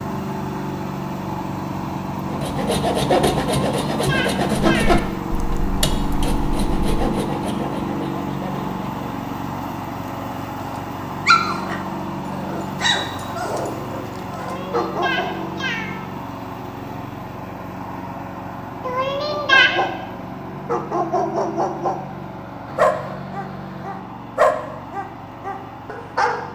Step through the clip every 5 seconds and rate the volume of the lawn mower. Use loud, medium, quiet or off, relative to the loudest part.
loud, loud, loud, medium, medium, medium.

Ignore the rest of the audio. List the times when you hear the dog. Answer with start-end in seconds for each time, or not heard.
10.6-15.5, 19.2-26.4.